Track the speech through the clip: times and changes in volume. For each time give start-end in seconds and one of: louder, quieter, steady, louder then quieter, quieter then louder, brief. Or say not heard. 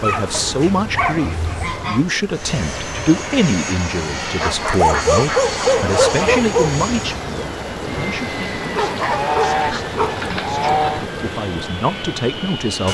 0.0-12.8 quieter then louder.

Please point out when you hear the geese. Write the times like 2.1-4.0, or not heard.
0.3-2.1, 4.4-6.4, 8.8-11.1.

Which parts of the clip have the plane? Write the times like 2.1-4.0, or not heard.
2.3-12.8.